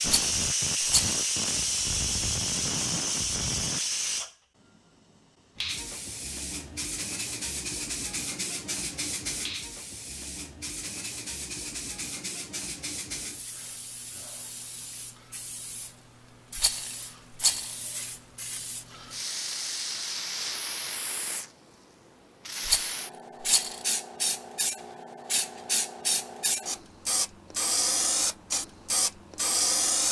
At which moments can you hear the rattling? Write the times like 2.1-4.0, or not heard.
0.1-1.2, 16.6-17.8, 22.6-23.9.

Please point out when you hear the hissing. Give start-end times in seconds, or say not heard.
0.0-4.3, 5.5-30.0.